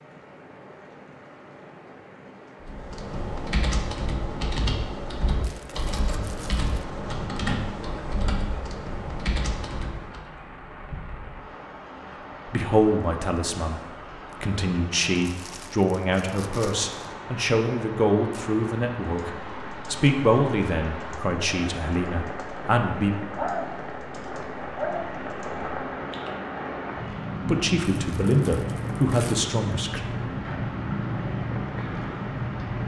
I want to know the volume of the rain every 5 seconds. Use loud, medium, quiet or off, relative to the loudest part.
quiet, quiet, medium, medium, loud, loud, loud.